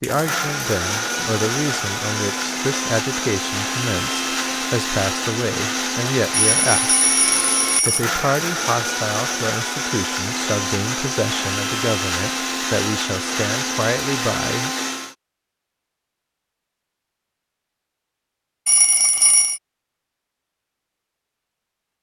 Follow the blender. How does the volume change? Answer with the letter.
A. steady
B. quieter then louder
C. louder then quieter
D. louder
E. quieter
A.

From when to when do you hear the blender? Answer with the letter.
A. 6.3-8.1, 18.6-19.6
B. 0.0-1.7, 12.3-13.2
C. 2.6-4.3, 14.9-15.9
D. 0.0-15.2
D.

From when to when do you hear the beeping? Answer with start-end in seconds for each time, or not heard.
6.3-8.1, 18.6-19.6.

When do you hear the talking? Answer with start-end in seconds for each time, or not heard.
0.0-7.0, 7.8-14.7.